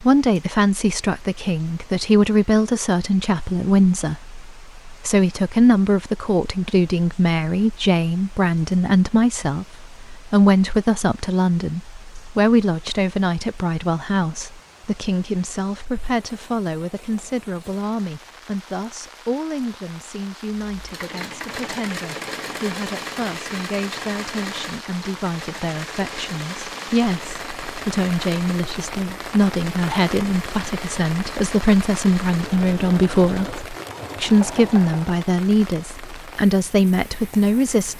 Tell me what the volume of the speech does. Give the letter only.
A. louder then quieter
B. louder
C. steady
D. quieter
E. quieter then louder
E.